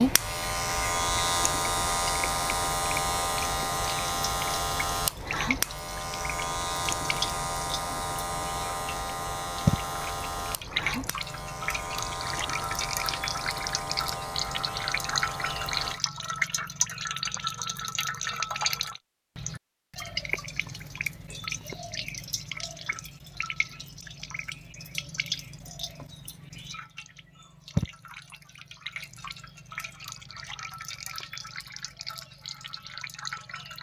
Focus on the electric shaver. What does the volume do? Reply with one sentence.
The loudness of the electric shaver goes down.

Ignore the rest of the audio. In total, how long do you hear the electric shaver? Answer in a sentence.
The electric shaver can be heard for 16 seconds in total.